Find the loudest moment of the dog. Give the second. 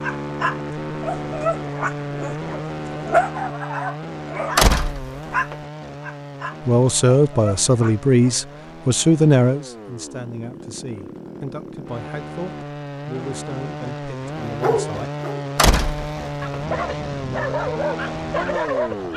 3 s.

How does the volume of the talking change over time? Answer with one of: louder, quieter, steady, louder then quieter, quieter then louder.
quieter.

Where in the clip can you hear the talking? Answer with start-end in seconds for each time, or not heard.
6.7-15.1.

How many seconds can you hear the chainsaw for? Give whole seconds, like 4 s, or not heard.
19 s.